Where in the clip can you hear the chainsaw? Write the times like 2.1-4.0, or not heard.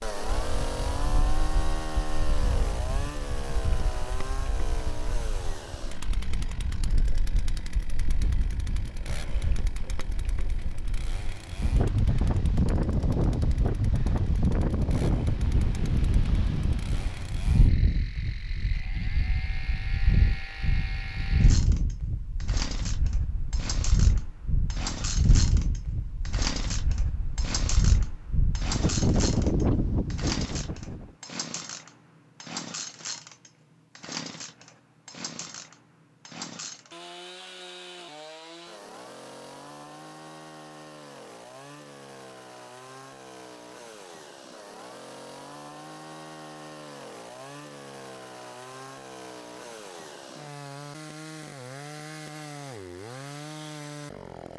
0.0-54.5.